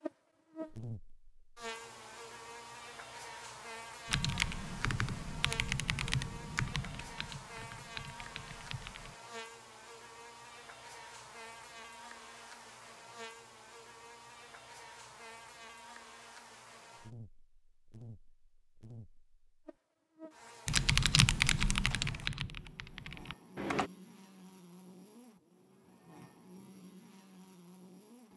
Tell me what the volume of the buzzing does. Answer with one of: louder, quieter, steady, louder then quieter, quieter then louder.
quieter.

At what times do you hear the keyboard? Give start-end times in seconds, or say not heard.
4.0-9.2, 20.6-23.9.